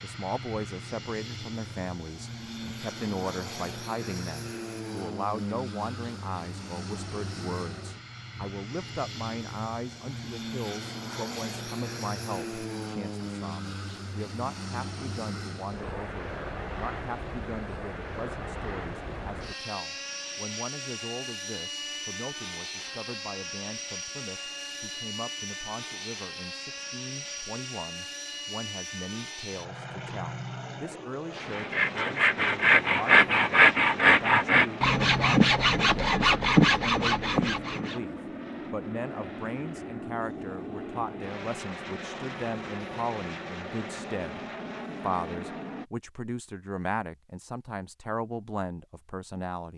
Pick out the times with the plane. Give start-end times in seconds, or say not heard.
0.0-45.9.